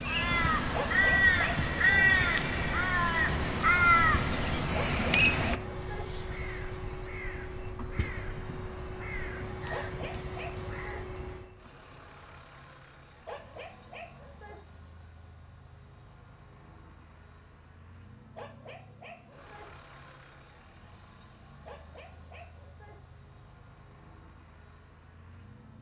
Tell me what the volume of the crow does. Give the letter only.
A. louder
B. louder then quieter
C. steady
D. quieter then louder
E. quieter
E.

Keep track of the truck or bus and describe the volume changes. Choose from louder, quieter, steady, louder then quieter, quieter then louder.
quieter.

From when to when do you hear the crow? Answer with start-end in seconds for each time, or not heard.
0.0-11.2.